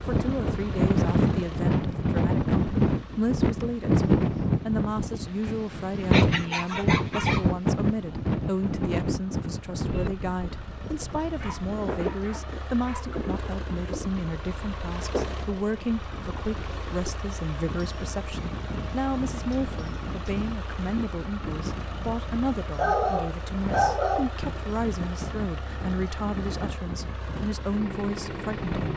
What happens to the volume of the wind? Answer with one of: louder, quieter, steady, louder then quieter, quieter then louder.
quieter.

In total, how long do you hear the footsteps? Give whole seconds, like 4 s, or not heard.
not heard.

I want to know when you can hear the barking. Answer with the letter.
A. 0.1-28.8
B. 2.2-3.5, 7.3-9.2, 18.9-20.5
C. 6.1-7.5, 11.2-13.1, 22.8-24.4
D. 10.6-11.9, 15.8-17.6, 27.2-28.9
C.